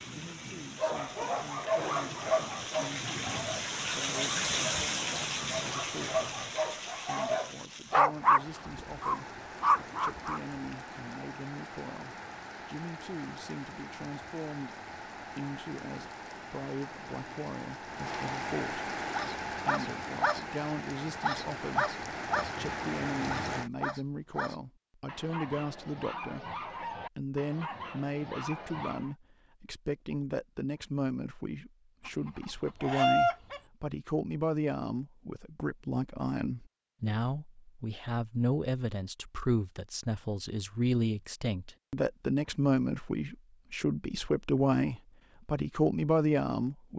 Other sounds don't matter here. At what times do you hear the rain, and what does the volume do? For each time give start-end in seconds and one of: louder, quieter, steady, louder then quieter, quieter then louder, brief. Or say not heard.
0.0-23.7 quieter then louder.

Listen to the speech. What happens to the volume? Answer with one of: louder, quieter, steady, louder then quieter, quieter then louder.
louder.